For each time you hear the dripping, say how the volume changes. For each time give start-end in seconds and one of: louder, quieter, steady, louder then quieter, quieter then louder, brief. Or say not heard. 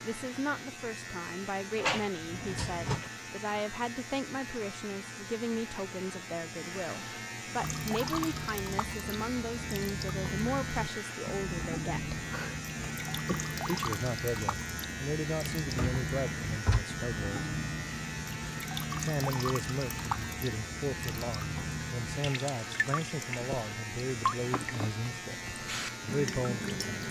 7.5-27.0 steady.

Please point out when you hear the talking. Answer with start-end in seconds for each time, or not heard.
0.0-12.2, 13.7-17.5, 18.9-25.4, 26.0-26.8.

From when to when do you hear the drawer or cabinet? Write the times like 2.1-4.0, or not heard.
1.8-3.1, 15.7-16.9.